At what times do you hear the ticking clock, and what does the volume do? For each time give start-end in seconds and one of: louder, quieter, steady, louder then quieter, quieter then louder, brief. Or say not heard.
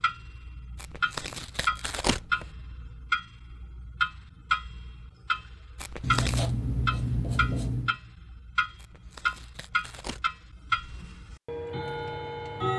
0.0-12.7 steady.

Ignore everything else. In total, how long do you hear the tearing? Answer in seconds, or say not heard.
4 s.